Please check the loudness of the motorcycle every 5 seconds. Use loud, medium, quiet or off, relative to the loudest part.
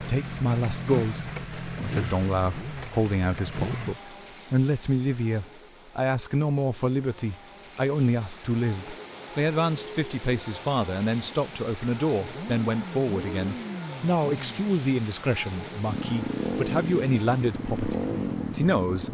loud, off, medium, loud.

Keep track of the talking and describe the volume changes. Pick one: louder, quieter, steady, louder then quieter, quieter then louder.
steady.